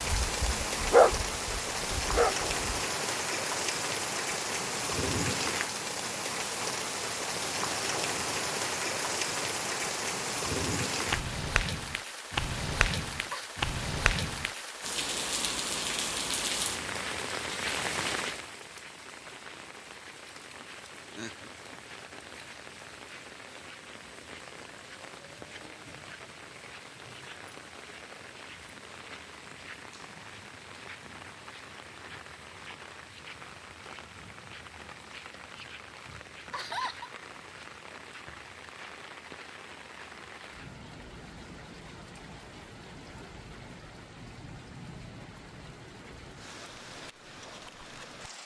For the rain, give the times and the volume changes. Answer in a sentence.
You can hear the rain from 0.0 to 48.4 s, getting quieter.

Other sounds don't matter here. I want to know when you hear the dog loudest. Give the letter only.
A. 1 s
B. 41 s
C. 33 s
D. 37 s
A.